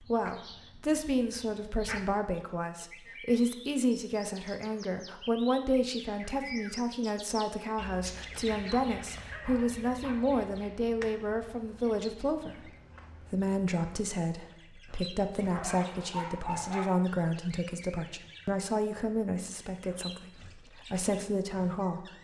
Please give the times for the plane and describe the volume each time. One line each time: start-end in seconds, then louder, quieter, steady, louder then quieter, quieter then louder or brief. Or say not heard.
not heard.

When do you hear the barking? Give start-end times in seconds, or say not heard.
0.5-2.0, 8.4-10.7, 15.3-16.9.